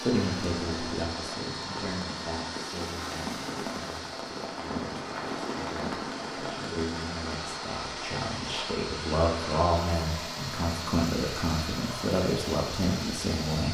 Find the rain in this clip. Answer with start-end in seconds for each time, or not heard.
0.0-13.6.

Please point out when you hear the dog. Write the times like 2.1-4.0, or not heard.
not heard.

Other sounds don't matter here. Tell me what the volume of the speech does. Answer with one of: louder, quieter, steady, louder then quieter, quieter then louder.
quieter then louder.